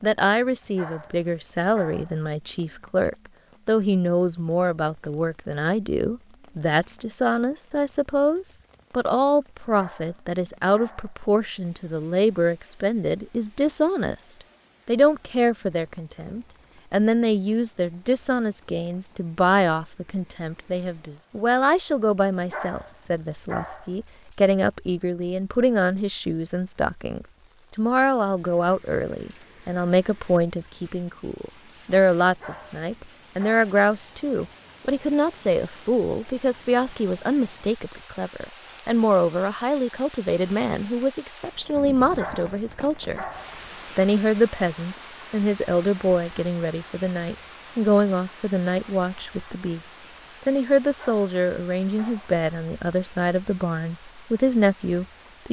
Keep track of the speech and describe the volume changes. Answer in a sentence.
The loudness of the speech stays about the same.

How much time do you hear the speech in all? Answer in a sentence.
You can hear the speech for 55 seconds altogether.